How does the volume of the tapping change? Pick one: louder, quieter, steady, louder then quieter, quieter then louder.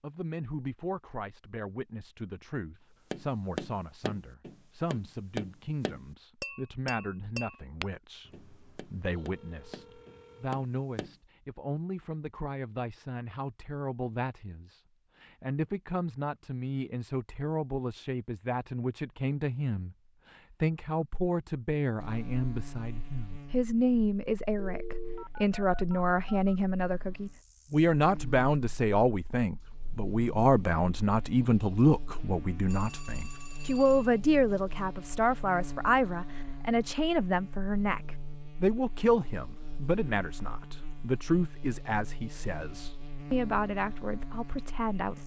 quieter then louder.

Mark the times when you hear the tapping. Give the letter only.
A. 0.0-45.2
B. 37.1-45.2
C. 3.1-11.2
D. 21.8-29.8
C.